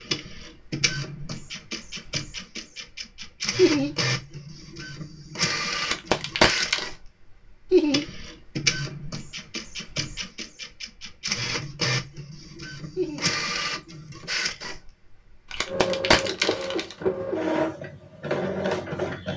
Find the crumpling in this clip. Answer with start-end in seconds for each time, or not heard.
5.8-6.8, 15.5-16.9.